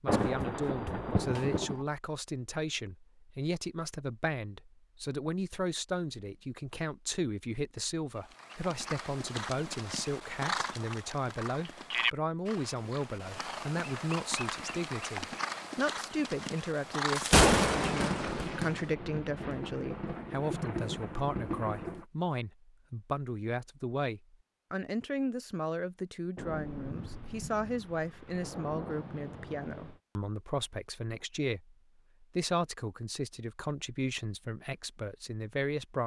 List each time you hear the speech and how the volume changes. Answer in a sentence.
You can hear the speech from 0.0 to 36.0 s, at a steady volume.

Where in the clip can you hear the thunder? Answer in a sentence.
You can hear the thunder from 0.1 to 1.9 s, from 17.1 to 22.1 s and from 26.4 to 30.0 s.